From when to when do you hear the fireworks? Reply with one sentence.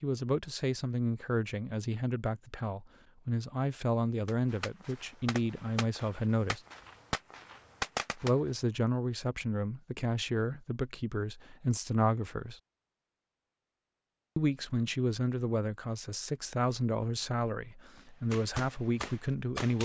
You can hear the fireworks from 4.2 to 8.3 s and from 17.9 to 19.8 s.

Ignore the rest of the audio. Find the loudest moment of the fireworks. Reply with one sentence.
The loudest moment of the fireworks is at 8 seconds.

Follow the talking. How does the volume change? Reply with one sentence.
The volume of the talking stays about the same.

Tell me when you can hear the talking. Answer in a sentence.
You can hear the talking from 0.0 to 6.6 s, from 8.2 to 12.6 s and from 14.3 to 19.8 s.